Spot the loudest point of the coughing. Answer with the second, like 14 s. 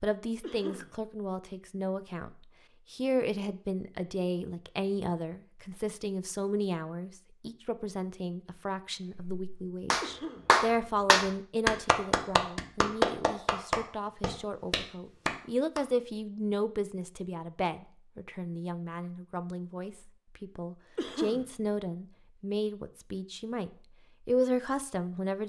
21 s.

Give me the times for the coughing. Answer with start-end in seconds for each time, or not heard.
0.4-0.9, 10.0-10.5, 20.9-21.4.